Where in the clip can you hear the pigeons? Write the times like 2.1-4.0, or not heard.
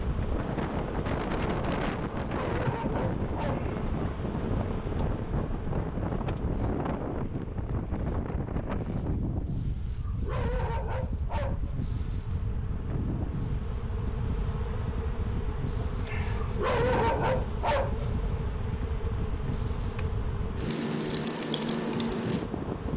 not heard.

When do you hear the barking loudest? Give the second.
17 s.